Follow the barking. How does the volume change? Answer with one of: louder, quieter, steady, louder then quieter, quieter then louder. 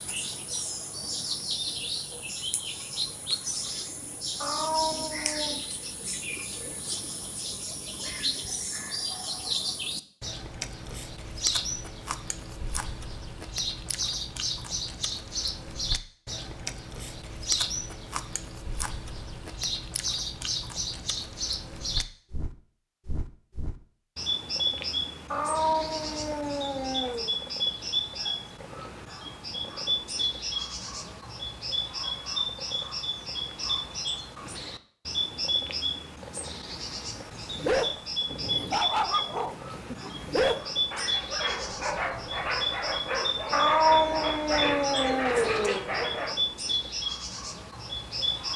steady.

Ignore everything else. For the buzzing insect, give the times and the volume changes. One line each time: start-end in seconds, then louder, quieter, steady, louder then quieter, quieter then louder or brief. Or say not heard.
not heard.